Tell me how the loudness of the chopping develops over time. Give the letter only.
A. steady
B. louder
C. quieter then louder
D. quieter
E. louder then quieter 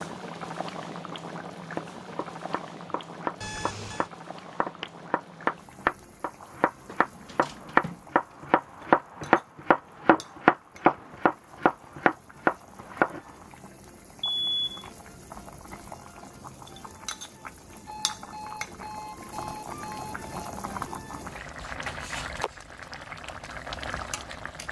B.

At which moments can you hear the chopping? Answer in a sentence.
You can hear the chopping from 1.6 to 13.2 s.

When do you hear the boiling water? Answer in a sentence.
You can hear the boiling water from 0.0 to 24.6 s.